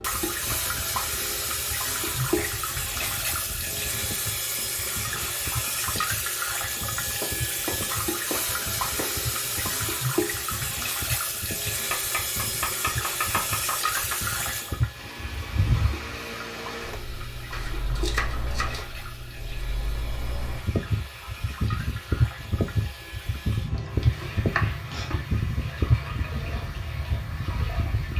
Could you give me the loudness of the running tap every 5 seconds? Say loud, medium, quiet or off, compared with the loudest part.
loud, loud, loud, medium, medium, medium.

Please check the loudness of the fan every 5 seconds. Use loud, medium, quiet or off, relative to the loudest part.
quiet, medium, medium, medium, loud, loud.